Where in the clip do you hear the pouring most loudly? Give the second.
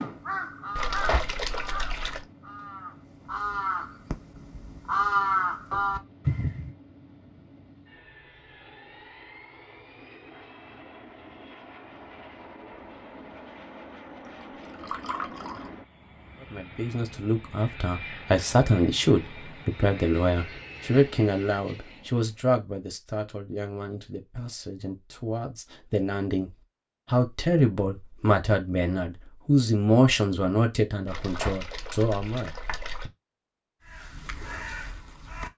1 s.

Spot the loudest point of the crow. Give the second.
5 s.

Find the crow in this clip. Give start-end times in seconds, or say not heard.
0.0-6.8, 33.8-35.5.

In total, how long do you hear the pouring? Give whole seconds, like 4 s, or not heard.
5 s.